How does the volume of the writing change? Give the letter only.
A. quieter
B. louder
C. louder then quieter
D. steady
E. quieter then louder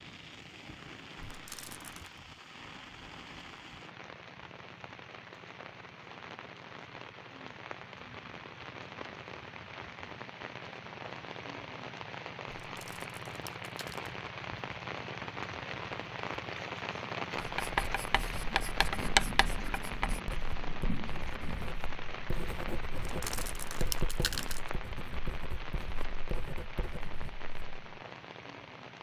A.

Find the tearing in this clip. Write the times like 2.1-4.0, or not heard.
1.2-2.2, 12.7-14.1, 22.9-24.7.